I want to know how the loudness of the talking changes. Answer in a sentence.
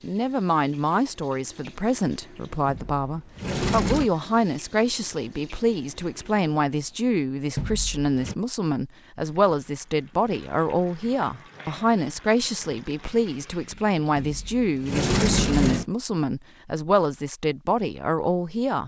The volume of the talking stays about the same.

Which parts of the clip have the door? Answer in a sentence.
The door can be heard from 2.6 to 4.1 s, from 7.5 to 8.3 s and from 14.2 to 15.8 s.